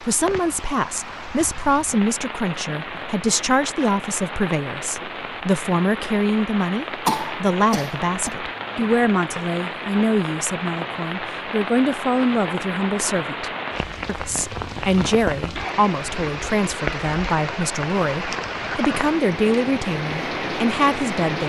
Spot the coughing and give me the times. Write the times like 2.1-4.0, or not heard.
7.0-8.3.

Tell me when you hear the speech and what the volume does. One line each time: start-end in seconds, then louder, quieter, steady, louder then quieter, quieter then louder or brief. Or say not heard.
0.0-21.4 steady.